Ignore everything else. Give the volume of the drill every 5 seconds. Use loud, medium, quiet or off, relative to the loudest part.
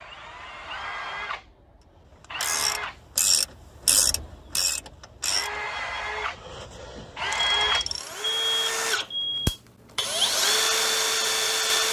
quiet, medium, loud.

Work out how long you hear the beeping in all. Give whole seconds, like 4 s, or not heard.
2 s.